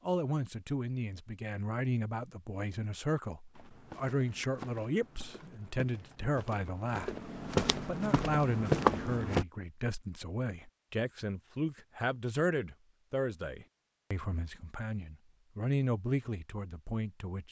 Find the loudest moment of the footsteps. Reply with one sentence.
The volume of the footsteps peaks at 9 seconds.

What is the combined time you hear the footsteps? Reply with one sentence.
The footsteps can be heard for 6 seconds in total.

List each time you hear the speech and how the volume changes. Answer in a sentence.
You can hear the speech from 0.1 to 17.4 s, at a steady volume.